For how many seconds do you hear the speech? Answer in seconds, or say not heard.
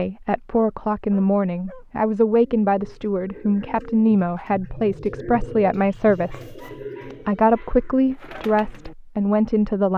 9 s.